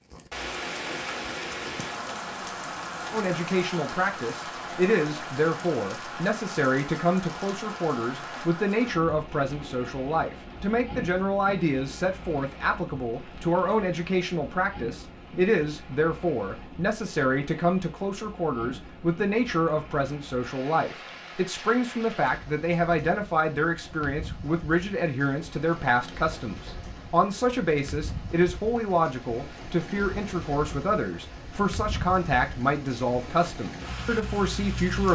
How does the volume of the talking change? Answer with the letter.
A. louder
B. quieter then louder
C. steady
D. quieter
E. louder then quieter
C.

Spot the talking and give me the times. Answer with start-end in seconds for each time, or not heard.
3.1-35.0.